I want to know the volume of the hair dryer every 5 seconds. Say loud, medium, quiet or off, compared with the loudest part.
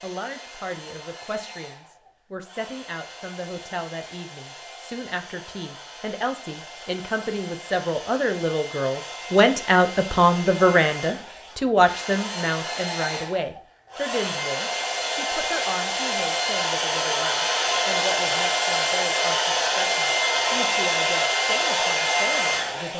quiet, quiet, medium, loud, loud.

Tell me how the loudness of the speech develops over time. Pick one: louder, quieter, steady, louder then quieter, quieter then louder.
louder then quieter.